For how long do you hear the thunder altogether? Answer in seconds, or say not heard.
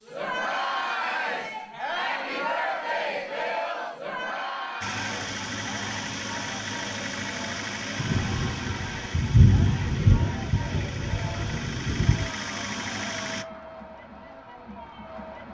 4 s.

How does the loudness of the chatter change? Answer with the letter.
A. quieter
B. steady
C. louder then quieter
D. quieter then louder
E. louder
A.